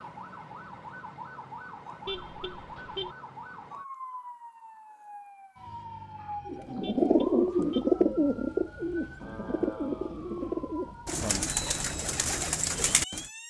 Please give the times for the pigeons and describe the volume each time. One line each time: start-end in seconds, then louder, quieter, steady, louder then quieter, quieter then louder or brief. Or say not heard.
6.5-13.3 quieter.